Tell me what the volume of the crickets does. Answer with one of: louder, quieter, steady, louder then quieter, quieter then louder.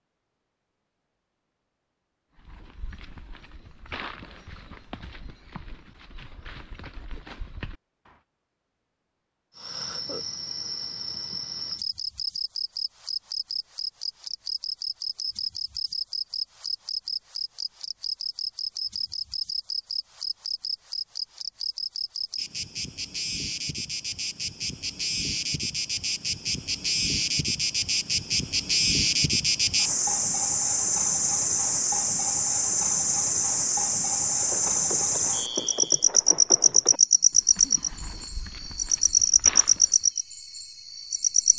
louder.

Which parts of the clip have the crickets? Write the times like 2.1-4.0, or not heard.
9.6-41.5.